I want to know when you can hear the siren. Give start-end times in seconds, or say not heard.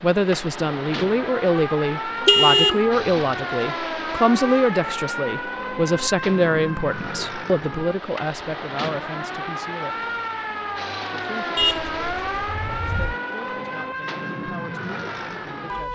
0.0-15.9.